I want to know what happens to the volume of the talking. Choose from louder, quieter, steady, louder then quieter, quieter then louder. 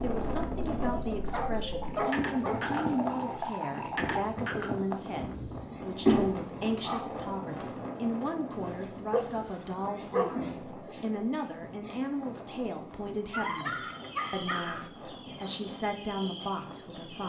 steady.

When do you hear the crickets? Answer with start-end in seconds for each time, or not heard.
0.0-17.2.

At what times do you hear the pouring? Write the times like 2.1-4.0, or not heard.
1.7-4.2.